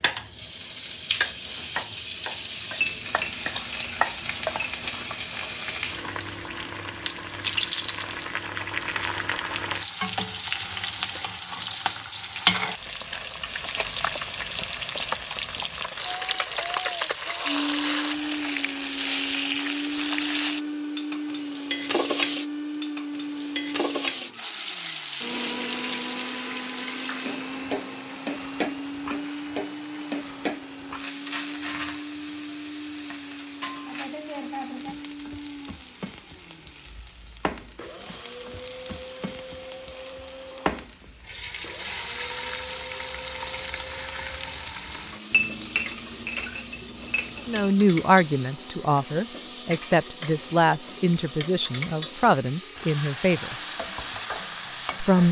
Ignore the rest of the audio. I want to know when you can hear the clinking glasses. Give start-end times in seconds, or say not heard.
2.8-5.2, 45.3-47.7.